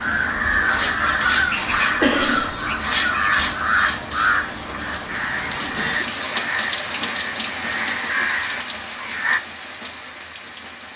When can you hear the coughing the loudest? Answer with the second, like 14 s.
2 s.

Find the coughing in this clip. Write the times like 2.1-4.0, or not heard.
2.0-2.6, 5.8-6.5.